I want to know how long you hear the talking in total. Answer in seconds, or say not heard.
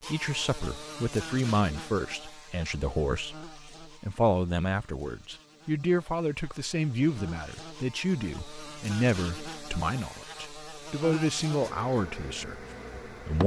13 s.